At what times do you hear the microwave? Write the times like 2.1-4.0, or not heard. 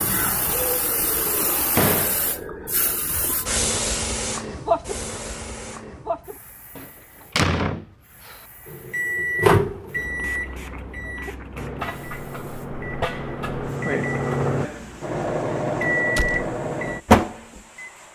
8.7-17.9.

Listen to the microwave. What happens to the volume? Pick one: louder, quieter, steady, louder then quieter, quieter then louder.
quieter then louder.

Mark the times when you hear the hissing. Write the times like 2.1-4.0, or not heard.
0.0-18.1.